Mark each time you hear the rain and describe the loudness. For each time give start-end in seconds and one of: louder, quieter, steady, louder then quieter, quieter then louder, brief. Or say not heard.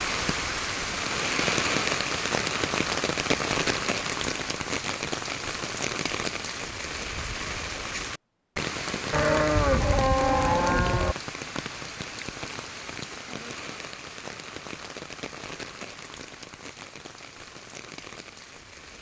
0.0-18.9 quieter.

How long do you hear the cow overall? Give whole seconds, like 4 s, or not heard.
2 s.